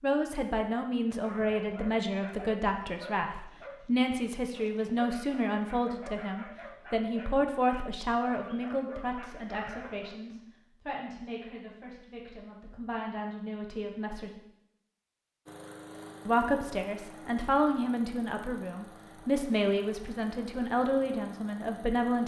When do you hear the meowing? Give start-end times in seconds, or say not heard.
not heard.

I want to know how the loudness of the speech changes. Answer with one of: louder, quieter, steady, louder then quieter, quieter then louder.
quieter then louder.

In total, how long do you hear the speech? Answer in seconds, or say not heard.
20 s.